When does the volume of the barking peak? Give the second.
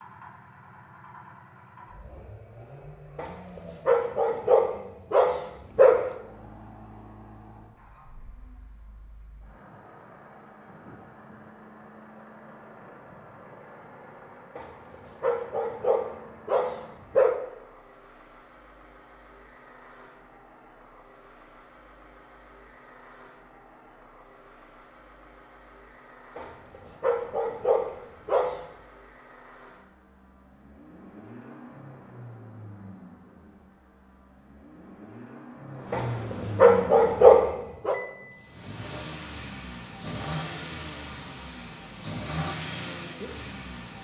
37 s.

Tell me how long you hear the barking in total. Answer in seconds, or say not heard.
10 s.